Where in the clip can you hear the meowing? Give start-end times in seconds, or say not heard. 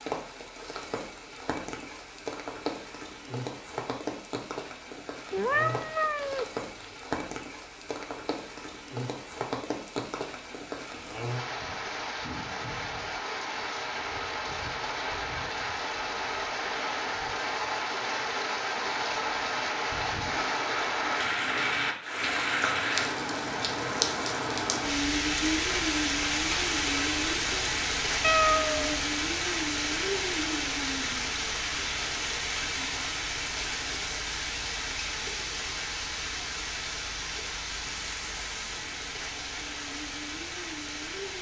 5.3-6.9, 28.2-29.1.